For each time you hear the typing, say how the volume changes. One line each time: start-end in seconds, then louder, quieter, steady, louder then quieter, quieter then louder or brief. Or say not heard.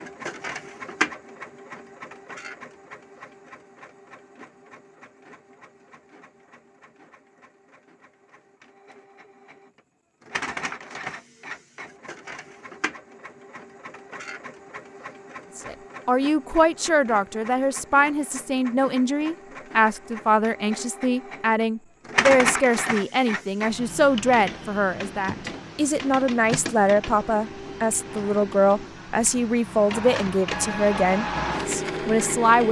not heard.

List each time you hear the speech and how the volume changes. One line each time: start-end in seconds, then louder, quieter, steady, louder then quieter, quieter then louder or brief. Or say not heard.
15.6-32.6 steady.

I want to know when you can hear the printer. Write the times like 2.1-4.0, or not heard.
0.0-32.6.